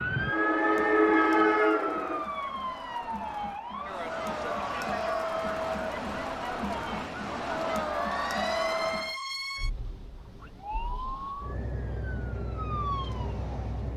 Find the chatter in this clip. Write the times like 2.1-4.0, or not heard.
0.1-9.2.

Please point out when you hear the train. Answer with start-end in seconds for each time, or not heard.
0.0-2.2.